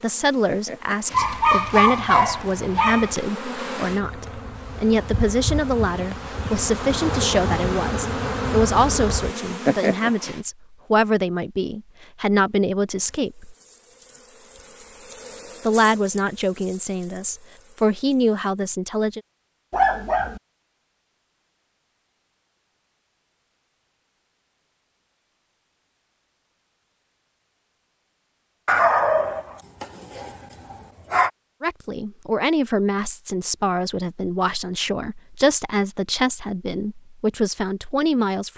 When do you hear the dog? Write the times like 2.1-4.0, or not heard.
1.1-3.1, 19.7-20.4, 28.6-31.3.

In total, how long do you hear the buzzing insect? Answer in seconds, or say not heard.
16 s.